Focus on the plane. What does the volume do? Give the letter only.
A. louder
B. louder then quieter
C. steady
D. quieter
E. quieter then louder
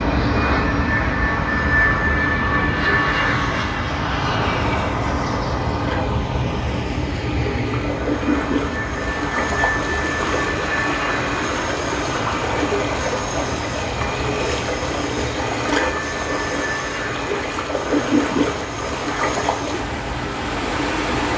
D.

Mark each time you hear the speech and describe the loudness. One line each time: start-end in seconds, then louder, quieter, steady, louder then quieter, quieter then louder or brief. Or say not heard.
not heard.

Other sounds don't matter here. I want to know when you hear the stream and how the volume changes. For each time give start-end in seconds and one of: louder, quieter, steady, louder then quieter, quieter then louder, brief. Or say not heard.
0.0-21.3 louder.